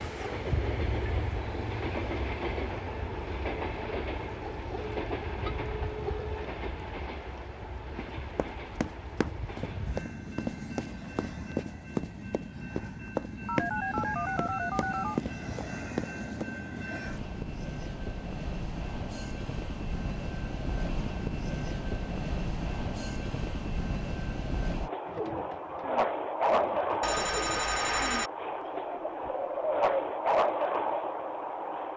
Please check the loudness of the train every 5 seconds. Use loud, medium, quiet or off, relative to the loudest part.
medium, medium, medium, medium, medium, loud, loud.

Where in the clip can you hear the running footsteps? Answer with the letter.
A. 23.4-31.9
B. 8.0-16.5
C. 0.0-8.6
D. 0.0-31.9
B.